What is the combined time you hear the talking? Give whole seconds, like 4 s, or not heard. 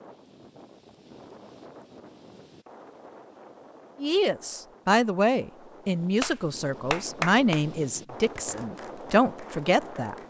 6 s.